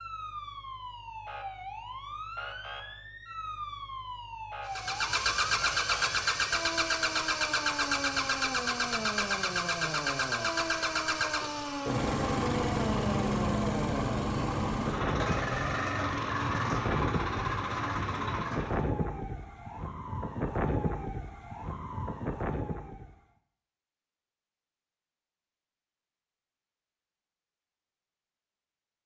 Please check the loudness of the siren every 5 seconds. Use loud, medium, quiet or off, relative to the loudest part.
medium, loud, loud, loud, loud, off.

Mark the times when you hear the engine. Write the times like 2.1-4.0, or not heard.
4.7-18.9.